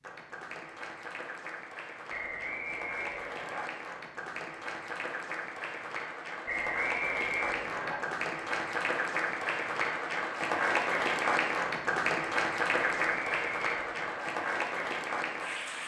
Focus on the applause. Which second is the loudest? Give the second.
11 s.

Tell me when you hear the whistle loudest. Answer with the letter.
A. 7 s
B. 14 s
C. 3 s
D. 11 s
A.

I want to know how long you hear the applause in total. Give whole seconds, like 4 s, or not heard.
16 s.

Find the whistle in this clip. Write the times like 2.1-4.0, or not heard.
2.1-3.6, 6.5-8.0, 13.0-14.3.